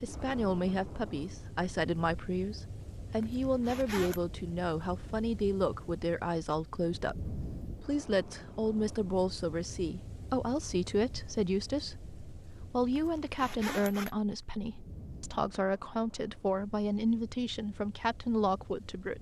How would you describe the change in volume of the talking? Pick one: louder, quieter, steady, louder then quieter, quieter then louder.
steady.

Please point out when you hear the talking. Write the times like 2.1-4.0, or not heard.
0.0-19.1.